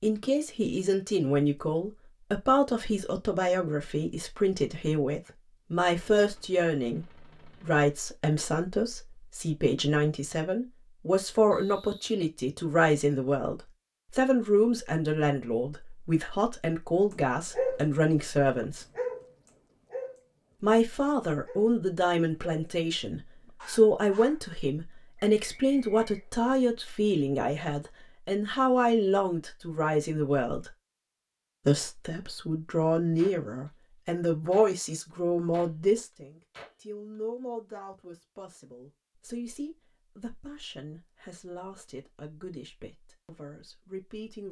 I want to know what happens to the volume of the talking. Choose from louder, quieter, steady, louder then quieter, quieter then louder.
quieter.